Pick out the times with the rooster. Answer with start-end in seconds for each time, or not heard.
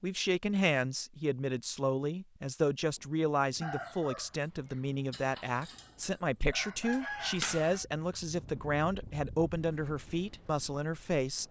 3.6-7.8.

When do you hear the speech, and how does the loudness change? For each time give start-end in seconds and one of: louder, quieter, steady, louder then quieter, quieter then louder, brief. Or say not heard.
0.0-11.4 steady.